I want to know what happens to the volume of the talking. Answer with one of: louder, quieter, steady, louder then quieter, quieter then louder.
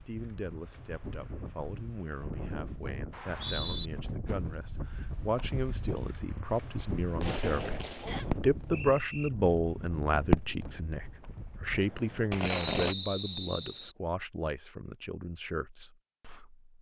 louder then quieter.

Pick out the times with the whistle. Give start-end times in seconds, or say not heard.
3.1-3.9, 8.1-9.3, 12.6-13.9.